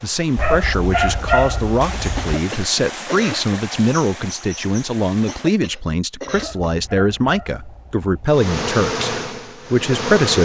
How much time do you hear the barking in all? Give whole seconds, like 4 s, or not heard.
4 s.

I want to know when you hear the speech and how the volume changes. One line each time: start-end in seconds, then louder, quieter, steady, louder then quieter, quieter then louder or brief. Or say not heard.
0.0-10.3 steady.